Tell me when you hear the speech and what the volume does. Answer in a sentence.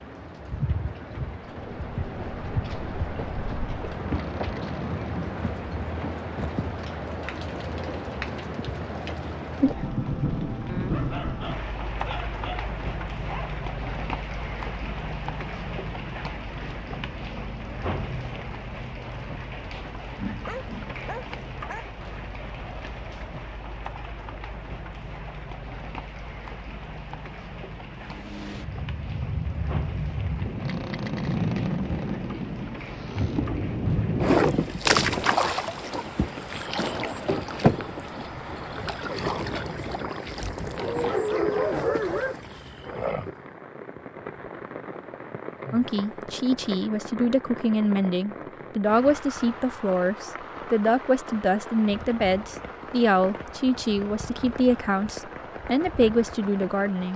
You can hear the speech from 45.7 to 57.1 s, at a steady volume.